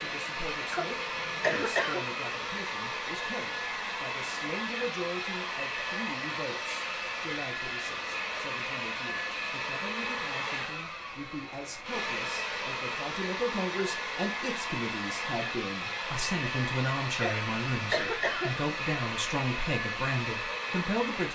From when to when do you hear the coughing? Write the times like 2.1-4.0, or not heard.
0.7-2.0, 17.1-18.6.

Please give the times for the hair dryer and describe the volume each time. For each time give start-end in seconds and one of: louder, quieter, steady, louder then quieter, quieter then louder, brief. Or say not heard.
0.0-21.3 steady.